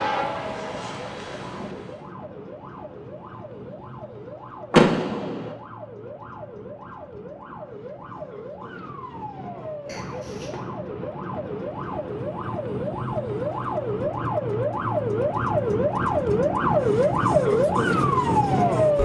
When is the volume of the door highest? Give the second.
5 s.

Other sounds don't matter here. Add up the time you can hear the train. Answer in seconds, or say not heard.
2 s.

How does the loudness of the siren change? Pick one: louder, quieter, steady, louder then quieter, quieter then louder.
louder.